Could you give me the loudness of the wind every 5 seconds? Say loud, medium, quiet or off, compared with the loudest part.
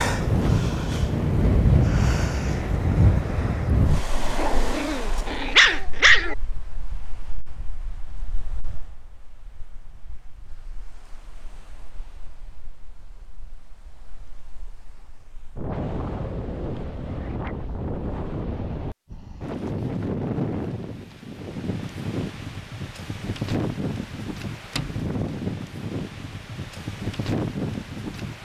loud, quiet, quiet, medium, medium, medium.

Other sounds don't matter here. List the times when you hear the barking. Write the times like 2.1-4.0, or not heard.
4.3-6.3.